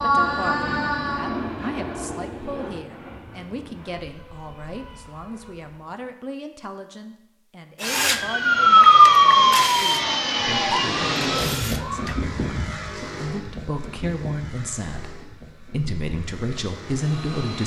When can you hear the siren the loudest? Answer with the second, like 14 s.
9 s.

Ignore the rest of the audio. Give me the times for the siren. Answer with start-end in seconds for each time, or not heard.
7.8-12.3.